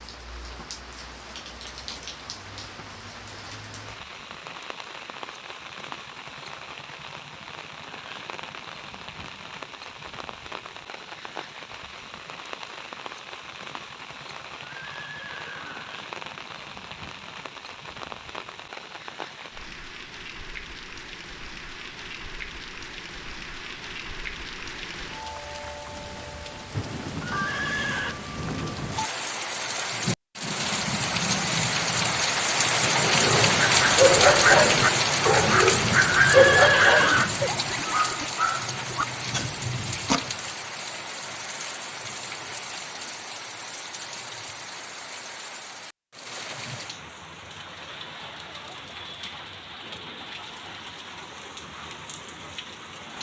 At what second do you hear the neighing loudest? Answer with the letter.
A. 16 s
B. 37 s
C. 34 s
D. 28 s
B.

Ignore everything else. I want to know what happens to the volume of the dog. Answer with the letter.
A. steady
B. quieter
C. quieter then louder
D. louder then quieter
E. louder
B.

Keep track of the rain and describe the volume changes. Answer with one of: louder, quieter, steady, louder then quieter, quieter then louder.
louder then quieter.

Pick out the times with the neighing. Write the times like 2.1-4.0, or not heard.
14.8-15.9, 27.2-28.1, 36.1-37.3.